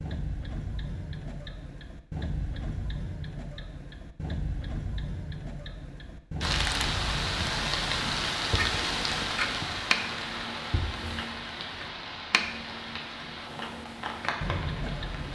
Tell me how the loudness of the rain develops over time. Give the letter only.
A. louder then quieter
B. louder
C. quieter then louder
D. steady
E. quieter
E.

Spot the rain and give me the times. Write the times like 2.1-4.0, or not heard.
6.4-15.2.